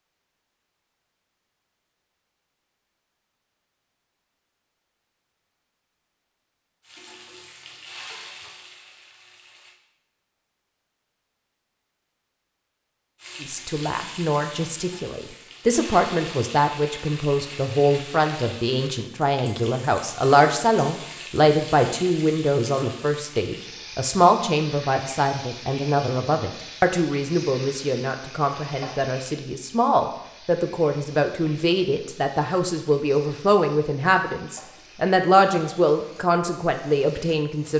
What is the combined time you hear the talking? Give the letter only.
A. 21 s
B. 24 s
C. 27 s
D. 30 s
B.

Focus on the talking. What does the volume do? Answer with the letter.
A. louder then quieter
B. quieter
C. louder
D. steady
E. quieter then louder
D.